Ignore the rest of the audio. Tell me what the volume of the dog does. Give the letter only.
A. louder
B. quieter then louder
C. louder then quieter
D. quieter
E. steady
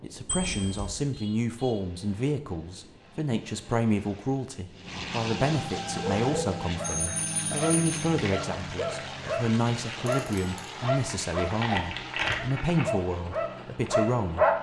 A.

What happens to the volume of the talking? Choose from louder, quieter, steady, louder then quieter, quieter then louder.
steady.